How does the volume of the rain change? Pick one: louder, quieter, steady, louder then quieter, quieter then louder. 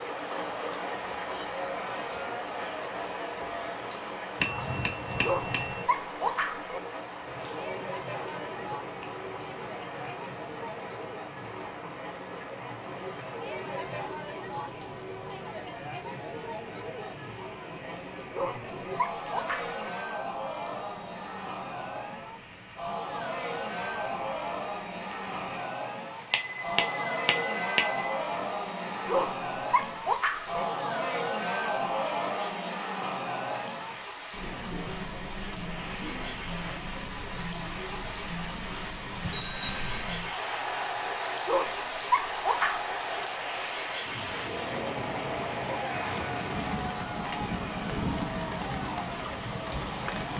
quieter then louder.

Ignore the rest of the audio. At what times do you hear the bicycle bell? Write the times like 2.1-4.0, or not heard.
4.4-5.8, 26.3-28.1, 39.2-40.0.